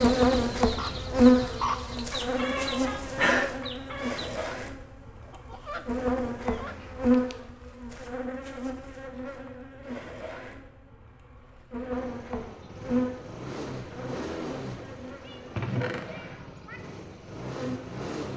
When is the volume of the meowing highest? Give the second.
3 s.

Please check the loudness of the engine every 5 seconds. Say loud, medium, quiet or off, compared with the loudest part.
off, off, loud, loud.